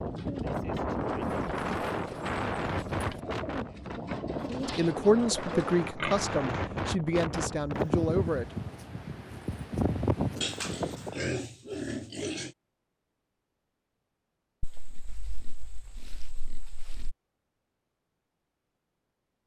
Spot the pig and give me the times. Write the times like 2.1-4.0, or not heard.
1.2-3.2, 6.0-6.6, 10.4-12.5, 14.6-17.1.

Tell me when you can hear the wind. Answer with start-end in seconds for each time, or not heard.
0.0-11.3.